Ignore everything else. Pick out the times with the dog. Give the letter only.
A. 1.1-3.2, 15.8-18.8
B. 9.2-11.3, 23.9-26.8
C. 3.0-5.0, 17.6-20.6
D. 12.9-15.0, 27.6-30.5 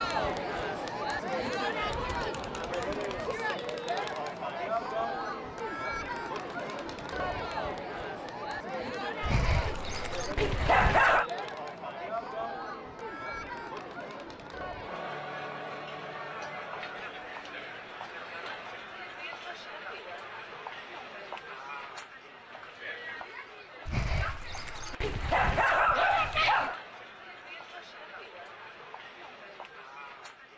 B.